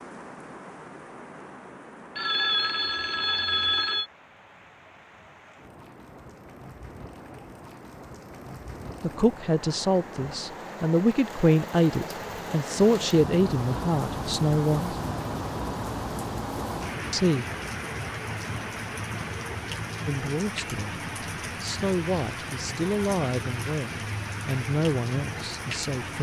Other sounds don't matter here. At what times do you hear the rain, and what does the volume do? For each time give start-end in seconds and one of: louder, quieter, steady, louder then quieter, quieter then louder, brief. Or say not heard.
0.0-26.1 louder.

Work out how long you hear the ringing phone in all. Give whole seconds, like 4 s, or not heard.
2 s.